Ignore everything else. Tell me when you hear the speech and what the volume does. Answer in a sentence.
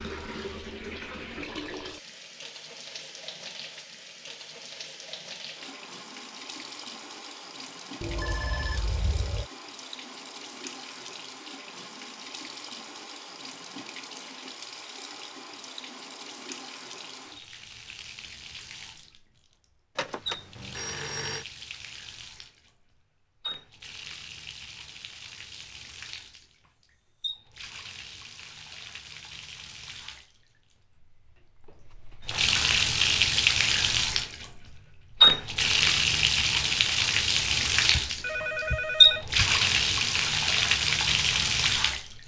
You can't hear the speech here.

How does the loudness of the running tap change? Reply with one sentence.
The volume of the running tap goes up.